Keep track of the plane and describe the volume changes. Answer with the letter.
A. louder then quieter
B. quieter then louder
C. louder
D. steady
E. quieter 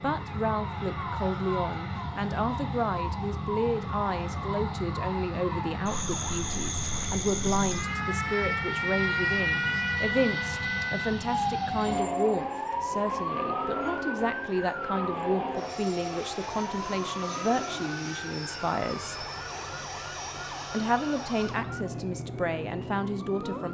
D.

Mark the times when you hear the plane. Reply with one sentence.
The plane can be heard from 0.0 to 23.6 s.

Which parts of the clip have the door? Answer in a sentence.
You can't hear the door here.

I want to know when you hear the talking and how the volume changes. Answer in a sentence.
The talking can be heard from 0.0 to 19.2 s, at a steady volume; and briefly from 20.7 to 23.6 s.